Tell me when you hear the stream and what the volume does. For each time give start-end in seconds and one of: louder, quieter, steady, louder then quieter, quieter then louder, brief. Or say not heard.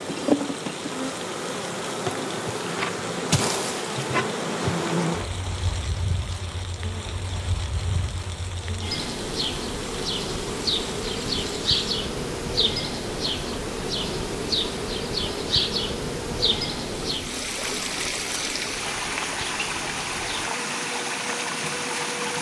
0.0-22.3 louder.